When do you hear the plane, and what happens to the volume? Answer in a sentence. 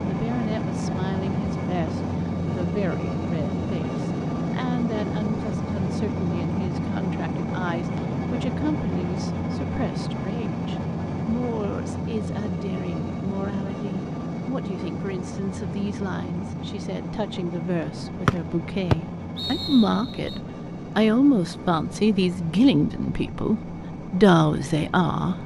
The plane can be heard from 0.0 to 25.4 s, getting quieter.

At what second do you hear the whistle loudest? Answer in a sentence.
The volume of the whistle peaks at 19 seconds.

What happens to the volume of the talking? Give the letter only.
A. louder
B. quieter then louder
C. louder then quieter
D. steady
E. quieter
A.